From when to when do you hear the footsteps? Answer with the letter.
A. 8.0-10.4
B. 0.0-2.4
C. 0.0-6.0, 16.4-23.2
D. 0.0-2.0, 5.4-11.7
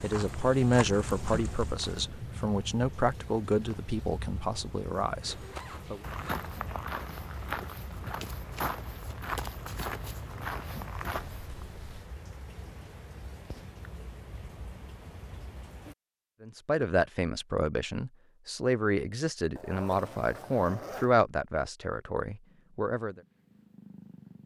D.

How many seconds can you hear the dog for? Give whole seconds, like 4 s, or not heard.
not heard.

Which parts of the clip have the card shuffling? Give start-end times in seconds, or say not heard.
8.0-10.4.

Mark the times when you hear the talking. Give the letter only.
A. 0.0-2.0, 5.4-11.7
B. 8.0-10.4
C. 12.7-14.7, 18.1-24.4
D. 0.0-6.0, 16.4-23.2
D.